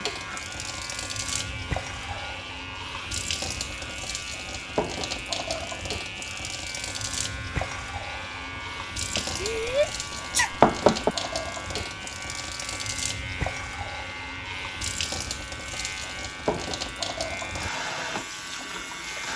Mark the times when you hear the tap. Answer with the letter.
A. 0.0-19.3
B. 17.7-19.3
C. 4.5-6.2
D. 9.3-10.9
A.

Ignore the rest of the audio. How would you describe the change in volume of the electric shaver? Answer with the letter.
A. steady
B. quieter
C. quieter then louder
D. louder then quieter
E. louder
A.